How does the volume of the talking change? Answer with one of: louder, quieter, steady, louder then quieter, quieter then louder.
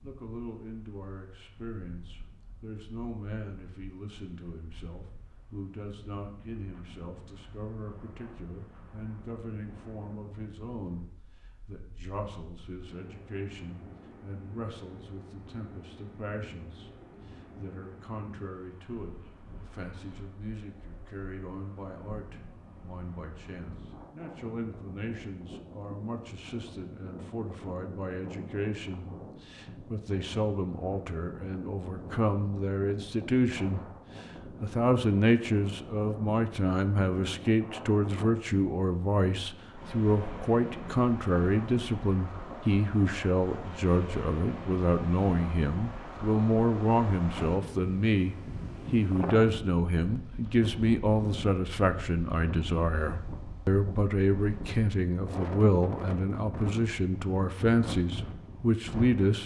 louder.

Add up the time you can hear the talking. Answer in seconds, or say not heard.
59 s.